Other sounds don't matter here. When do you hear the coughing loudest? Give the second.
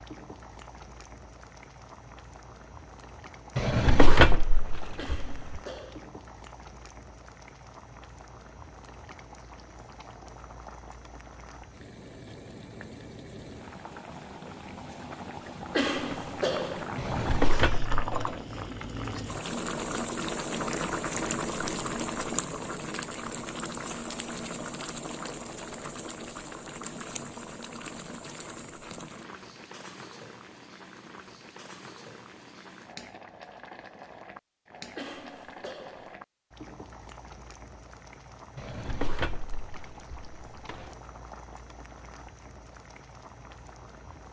16 s.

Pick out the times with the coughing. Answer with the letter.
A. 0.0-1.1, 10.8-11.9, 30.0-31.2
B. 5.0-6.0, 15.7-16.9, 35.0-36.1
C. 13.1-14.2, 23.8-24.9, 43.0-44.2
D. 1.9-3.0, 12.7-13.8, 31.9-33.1
B.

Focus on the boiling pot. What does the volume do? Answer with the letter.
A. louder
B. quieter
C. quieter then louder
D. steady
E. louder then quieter
E.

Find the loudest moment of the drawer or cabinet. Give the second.
4 s.